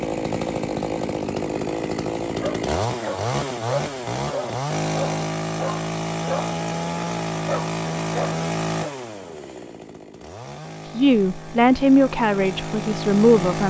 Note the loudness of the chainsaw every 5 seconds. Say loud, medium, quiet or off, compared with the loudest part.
loud, loud, medium.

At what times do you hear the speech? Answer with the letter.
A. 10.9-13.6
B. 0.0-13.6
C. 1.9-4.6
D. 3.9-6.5
A.